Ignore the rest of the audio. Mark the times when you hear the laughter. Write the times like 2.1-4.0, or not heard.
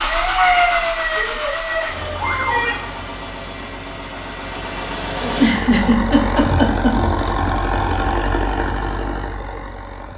0.3-2.8, 5.2-7.1.